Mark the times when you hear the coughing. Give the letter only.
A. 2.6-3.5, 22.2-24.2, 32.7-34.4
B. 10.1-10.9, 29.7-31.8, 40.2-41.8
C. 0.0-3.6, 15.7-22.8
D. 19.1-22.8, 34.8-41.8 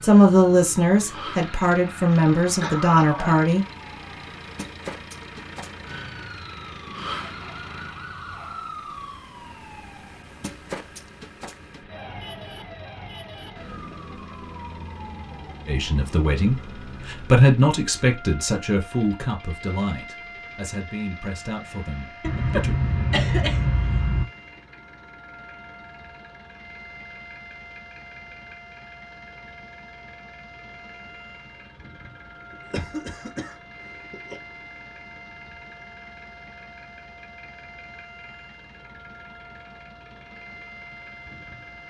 A.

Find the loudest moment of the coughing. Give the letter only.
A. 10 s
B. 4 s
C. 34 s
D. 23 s
D.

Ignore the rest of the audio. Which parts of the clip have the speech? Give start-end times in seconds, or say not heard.
0.0-3.6, 15.7-22.8.